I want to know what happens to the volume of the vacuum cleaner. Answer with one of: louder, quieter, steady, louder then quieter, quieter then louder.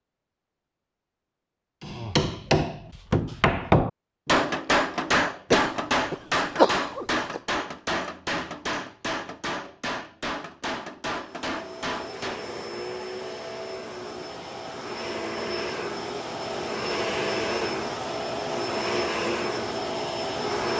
louder.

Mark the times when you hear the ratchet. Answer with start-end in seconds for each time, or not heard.
not heard.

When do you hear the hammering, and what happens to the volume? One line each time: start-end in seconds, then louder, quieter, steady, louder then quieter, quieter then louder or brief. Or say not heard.
1.8-12.4 quieter.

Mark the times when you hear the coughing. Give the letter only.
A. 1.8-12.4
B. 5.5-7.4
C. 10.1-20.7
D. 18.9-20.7
B.